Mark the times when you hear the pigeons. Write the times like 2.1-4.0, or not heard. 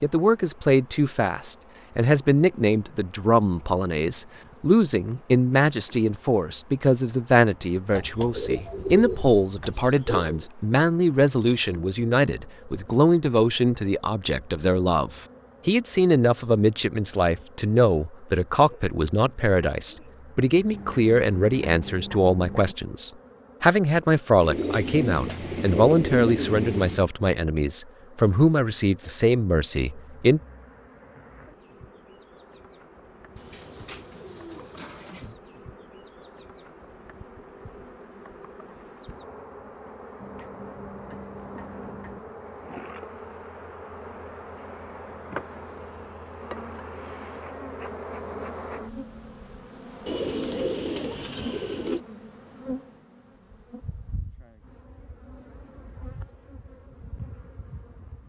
7.9-10.4, 24.4-27.1, 33.4-35.4, 50.0-52.0.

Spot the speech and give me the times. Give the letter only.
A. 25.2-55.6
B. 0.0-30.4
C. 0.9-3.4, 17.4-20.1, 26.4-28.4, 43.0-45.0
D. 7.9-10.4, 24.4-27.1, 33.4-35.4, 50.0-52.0
B.